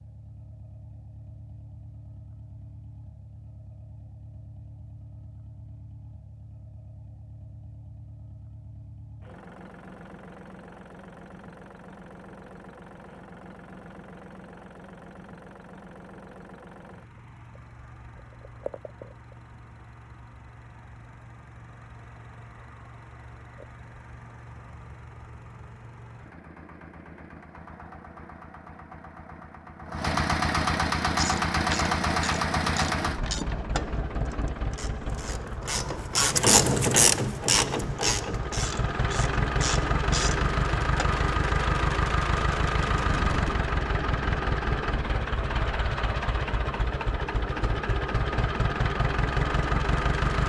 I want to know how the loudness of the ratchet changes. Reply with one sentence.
The volume of the ratchet goes up, then down.